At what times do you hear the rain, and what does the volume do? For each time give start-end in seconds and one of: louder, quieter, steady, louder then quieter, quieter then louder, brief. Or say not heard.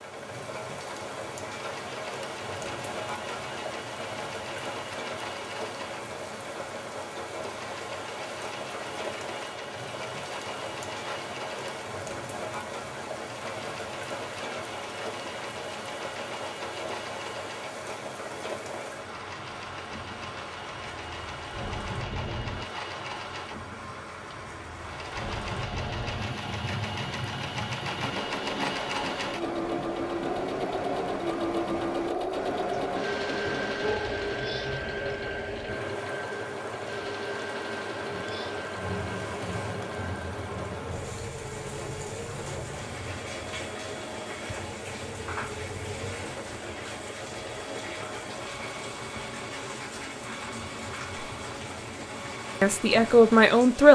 0.0-53.9 steady.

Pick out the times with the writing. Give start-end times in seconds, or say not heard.
not heard.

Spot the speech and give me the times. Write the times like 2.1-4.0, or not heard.
52.6-53.9.